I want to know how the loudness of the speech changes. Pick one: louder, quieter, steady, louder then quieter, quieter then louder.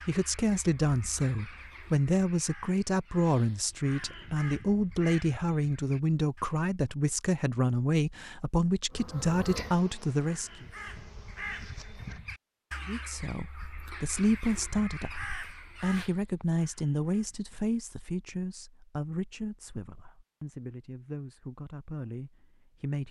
quieter.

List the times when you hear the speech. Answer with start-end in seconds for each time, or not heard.
0.1-10.7, 12.8-23.0.